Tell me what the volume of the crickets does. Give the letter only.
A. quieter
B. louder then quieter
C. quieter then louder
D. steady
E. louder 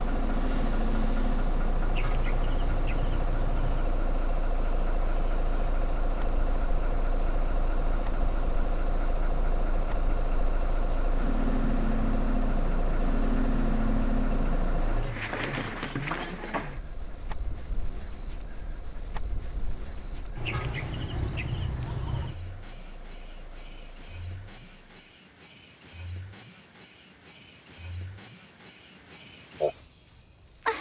E.